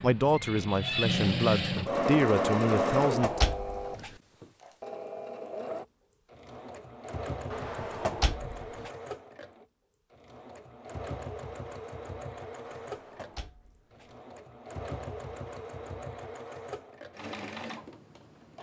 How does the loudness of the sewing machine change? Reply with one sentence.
The loudness of the sewing machine goes down.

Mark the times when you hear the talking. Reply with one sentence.
You can hear the talking from 0.0 to 3.4 s.